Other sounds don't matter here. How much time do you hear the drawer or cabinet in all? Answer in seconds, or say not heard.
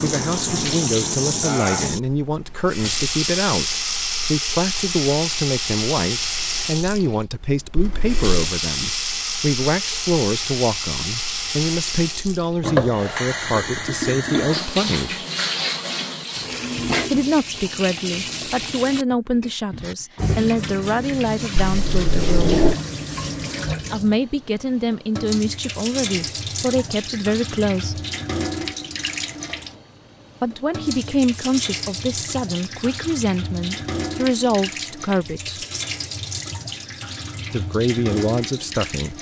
2 s.